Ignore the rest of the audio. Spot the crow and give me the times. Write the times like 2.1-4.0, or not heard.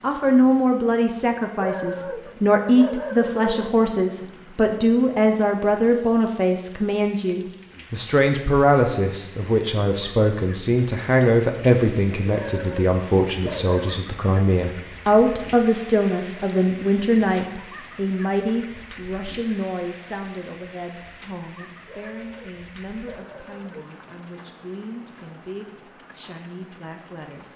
not heard.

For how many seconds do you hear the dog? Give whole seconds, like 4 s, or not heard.
6 s.